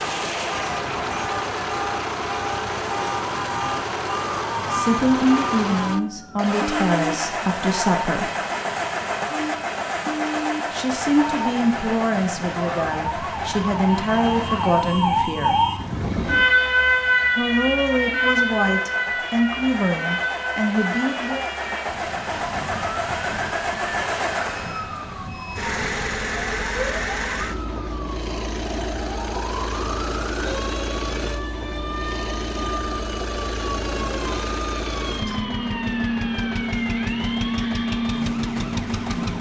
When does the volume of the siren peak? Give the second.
17 s.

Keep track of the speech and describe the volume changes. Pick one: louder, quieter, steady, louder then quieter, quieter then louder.
steady.